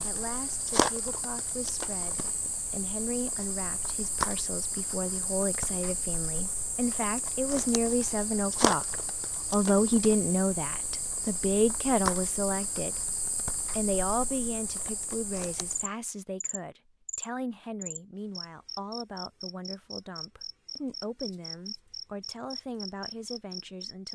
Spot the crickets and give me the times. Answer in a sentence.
You can hear the crickets from 0.0 to 24.1 s.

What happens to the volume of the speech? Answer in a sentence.
The loudness of the speech goes up, then down.